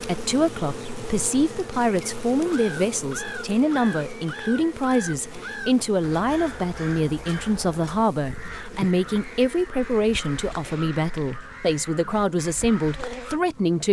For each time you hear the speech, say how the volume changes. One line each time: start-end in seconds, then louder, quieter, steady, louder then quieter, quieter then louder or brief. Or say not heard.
0.0-13.8 steady.